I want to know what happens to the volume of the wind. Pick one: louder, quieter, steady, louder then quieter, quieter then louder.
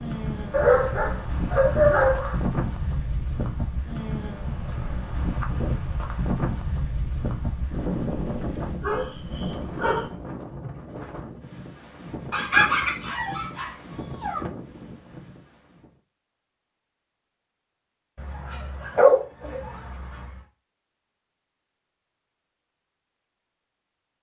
quieter.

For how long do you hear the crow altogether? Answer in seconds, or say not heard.
not heard.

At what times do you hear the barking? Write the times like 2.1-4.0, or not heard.
0.5-2.4, 8.8-10.1, 12.3-14.4, 18.1-20.4.